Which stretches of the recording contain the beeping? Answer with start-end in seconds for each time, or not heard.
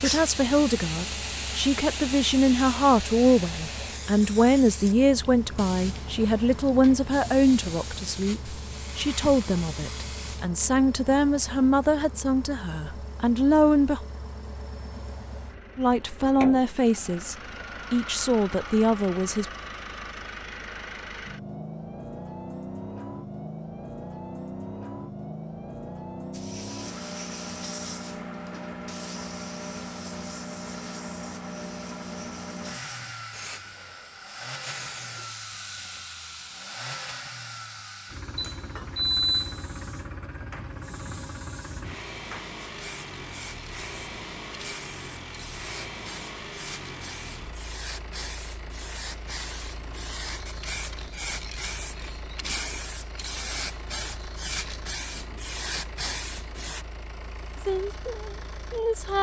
38.4-39.6.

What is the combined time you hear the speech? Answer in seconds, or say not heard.
19 s.